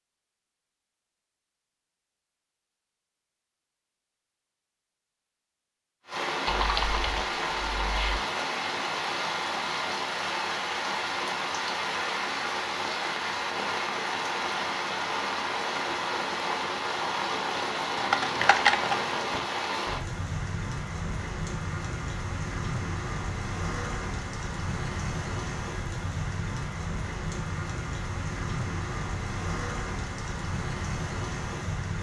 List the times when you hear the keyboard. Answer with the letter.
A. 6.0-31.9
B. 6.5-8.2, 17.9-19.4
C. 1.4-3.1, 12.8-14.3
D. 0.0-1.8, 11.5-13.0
B.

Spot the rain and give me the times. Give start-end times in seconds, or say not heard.
6.0-31.9.